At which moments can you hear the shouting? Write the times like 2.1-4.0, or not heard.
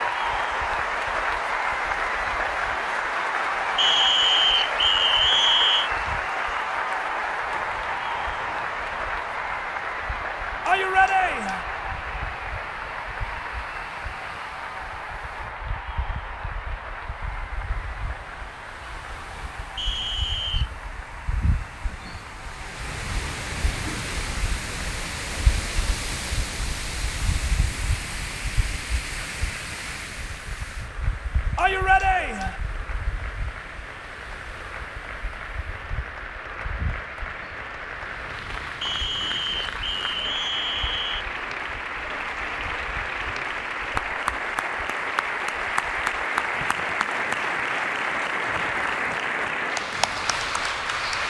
10.7-11.7, 31.6-32.5.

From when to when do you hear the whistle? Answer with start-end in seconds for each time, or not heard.
3.8-5.9, 19.8-20.7, 38.8-41.2.